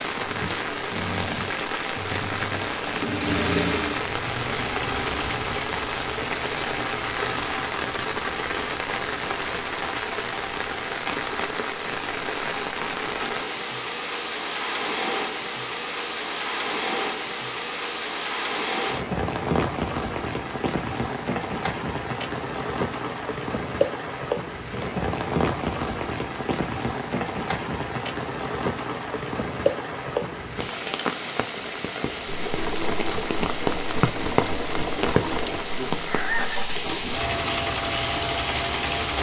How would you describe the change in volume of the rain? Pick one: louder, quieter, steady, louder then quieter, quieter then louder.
steady.